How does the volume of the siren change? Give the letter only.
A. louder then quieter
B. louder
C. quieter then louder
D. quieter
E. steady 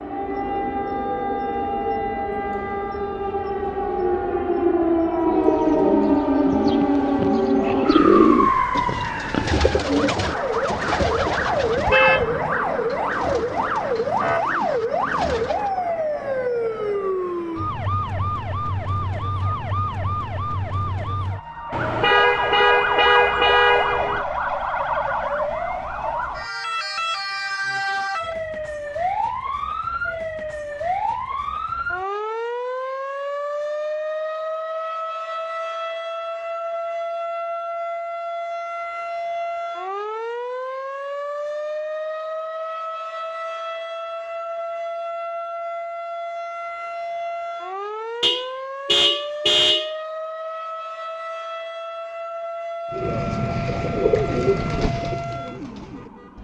D.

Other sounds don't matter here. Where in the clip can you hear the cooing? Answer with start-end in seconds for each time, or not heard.
5.2-15.7, 52.9-56.3.